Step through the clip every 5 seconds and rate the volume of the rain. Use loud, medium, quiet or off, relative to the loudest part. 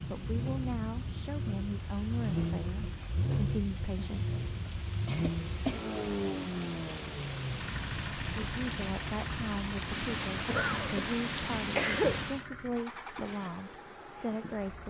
medium, medium, loud.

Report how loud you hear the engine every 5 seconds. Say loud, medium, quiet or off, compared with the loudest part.
loud, loud, medium.